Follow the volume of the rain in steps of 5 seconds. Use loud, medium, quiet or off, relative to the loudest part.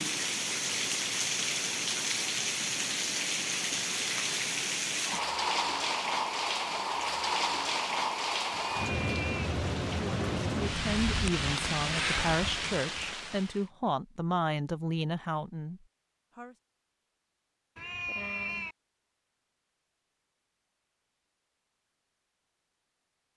loud, loud, loud, off, off.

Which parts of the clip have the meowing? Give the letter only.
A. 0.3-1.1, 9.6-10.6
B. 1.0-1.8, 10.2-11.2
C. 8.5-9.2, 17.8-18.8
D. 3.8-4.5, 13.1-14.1
C.